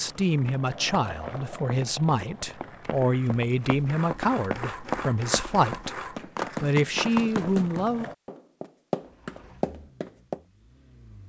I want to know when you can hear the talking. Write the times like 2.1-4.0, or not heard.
0.0-6.0, 6.6-8.1.